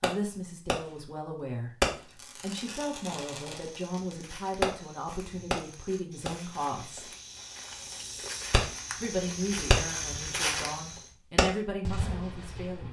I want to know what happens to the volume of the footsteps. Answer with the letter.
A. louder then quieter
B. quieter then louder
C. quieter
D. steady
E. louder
E.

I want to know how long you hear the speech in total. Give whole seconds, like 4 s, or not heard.
11 s.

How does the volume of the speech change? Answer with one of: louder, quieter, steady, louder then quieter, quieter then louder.
steady.